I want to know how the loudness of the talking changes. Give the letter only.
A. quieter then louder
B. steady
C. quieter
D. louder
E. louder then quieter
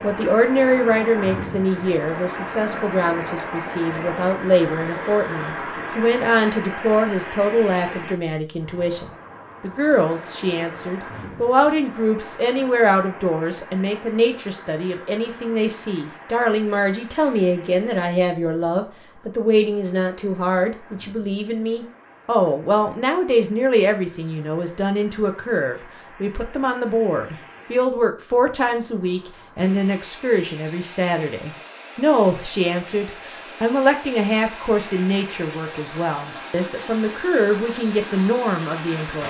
B.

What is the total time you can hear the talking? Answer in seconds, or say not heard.
39 s.